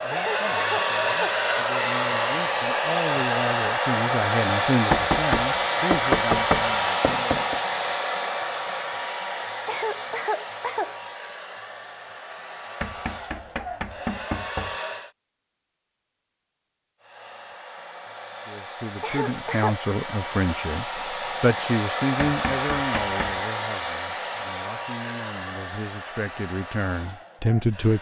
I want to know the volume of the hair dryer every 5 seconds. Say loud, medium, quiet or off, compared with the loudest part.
loud, loud, quiet, quiet, medium, quiet.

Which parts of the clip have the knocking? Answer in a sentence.
You can hear the knocking from 4.9 to 7.5 s, from 12.8 to 14.8 s and from 22.2 to 23.4 s.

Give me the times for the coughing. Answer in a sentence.
You can hear the coughing from 0.1 to 1.4 s, from 9.7 to 10.9 s and from 19.0 to 19.8 s.